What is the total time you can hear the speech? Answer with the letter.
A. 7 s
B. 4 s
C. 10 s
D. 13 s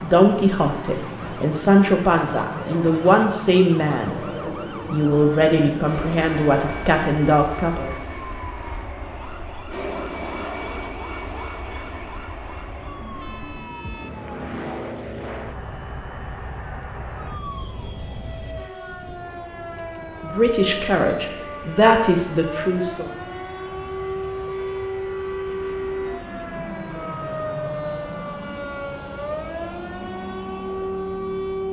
C.